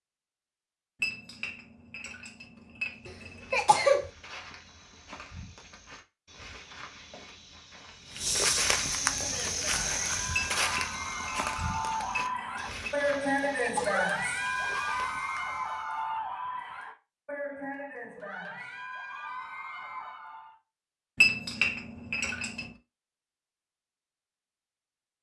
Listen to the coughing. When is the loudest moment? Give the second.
4 s.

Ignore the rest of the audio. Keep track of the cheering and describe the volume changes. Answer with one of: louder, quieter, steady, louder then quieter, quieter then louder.
louder then quieter.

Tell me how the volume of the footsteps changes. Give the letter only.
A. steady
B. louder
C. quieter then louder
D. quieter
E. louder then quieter
E.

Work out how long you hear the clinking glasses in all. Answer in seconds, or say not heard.
7 s.